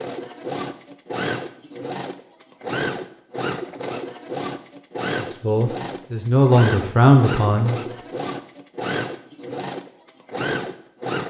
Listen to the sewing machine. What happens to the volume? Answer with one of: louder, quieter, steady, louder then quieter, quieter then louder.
steady.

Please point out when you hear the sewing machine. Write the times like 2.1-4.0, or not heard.
0.0-11.2.